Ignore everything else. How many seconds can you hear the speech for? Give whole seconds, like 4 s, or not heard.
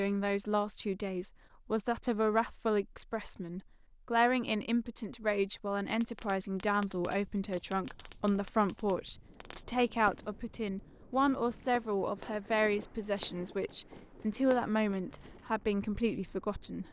17 s.